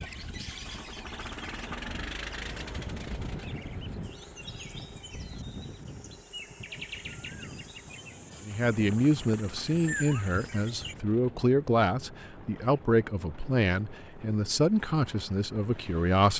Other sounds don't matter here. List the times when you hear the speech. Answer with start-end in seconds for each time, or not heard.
8.4-16.3.